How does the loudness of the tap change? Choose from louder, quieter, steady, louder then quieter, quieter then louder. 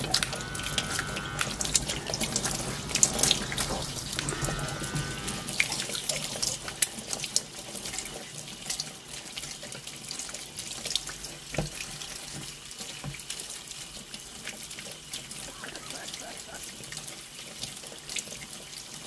quieter.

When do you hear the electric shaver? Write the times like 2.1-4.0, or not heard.
0.0-5.6.